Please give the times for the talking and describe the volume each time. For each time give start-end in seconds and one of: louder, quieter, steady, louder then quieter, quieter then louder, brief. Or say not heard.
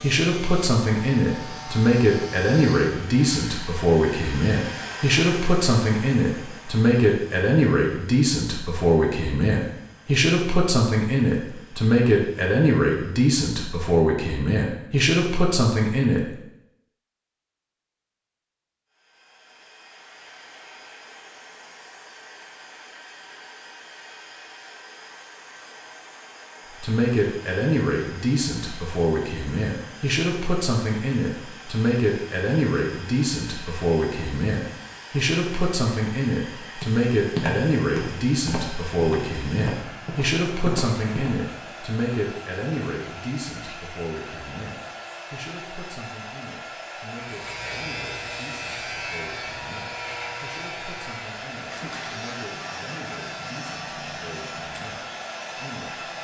0.0-16.3 steady
26.8-56.1 quieter.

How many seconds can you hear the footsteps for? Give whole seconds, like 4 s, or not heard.
5 s.